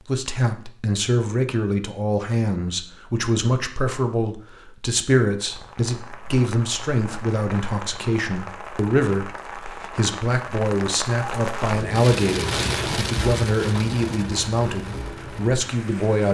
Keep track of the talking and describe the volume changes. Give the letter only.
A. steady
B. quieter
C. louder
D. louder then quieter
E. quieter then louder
A.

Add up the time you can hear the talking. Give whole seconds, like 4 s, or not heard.
16 s.